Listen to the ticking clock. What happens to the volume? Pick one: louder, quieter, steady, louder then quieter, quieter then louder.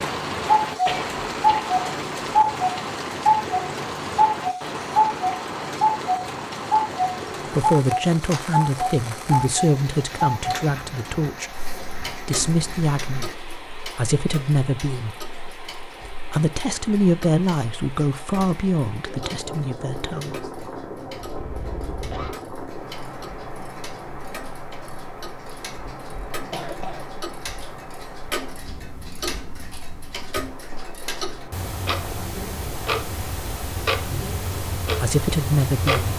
quieter then louder.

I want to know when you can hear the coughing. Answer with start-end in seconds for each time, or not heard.
0.8-1.6, 21.4-22.4, 26.4-27.1.